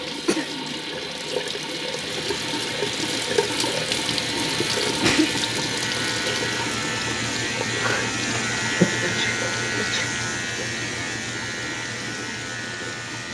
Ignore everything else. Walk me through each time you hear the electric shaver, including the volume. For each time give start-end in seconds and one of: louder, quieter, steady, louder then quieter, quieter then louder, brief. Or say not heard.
2.0-13.3 louder then quieter.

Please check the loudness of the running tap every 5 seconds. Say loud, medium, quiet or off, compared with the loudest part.
loud, loud, medium.